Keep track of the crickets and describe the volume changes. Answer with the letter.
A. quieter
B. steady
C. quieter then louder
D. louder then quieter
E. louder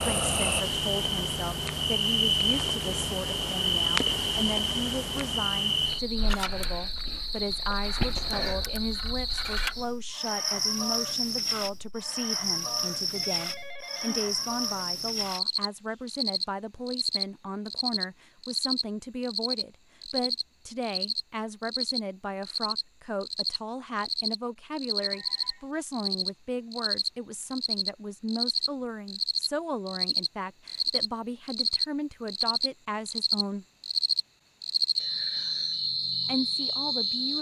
B.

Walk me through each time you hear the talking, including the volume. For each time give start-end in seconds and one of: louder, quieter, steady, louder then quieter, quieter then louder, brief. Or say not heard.
0.0-33.6 steady
36.2-37.3 brief.